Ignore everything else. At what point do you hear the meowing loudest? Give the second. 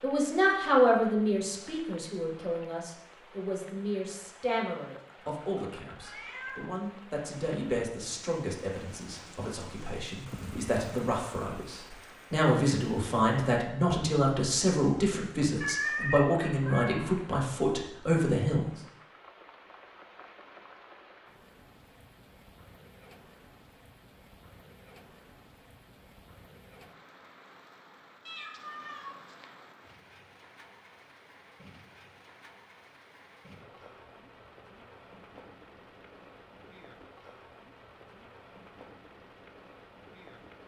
16 s.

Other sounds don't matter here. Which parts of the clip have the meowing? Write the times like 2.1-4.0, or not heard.
5.0-6.7, 15.6-17.1, 28.2-29.4.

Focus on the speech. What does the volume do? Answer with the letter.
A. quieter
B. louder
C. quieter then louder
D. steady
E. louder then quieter
C.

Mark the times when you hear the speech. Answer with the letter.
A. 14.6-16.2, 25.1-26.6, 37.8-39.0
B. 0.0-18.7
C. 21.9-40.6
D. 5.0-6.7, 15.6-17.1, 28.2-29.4
B.